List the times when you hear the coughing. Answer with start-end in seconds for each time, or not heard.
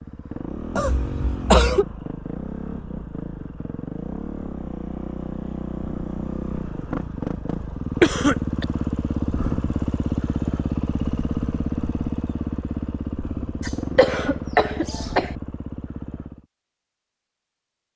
0.8-1.9, 8.0-8.7, 13.6-15.3.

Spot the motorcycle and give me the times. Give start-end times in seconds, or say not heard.
0.0-16.4.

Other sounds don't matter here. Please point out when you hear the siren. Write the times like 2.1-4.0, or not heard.
not heard.